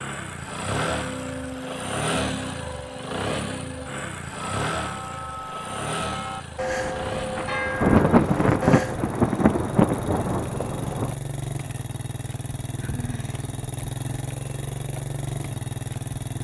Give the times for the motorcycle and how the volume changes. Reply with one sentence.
You can hear the motorcycle from 0.0 to 16.3 s, getting quieter then louder.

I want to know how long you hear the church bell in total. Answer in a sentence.
You can hear the church bell for 8 seconds altogether.